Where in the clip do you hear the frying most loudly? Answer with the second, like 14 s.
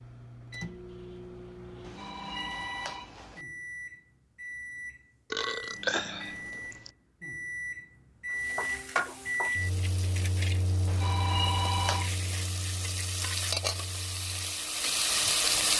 15 s.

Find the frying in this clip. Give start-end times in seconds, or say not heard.
8.3-15.7.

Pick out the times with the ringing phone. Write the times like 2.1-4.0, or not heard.
1.8-3.5, 10.8-12.1.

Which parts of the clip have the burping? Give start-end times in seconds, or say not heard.
5.3-6.9.